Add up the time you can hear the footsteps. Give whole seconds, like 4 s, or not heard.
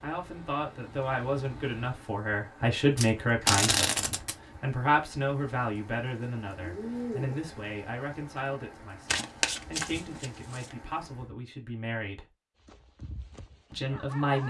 not heard.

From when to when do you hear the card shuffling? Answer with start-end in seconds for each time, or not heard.
3.0-4.3, 9.1-10.8.